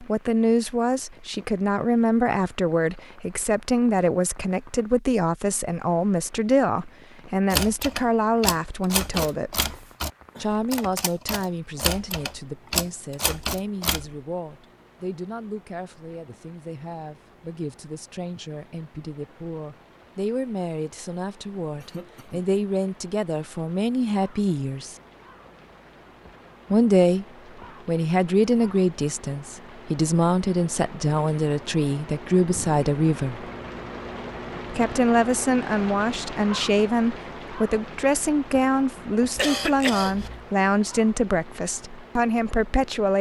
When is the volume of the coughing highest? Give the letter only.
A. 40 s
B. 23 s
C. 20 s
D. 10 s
A.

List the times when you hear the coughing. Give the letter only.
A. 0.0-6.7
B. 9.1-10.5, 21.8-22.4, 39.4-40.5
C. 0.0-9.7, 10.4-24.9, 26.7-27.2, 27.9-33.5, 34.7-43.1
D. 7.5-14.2
B.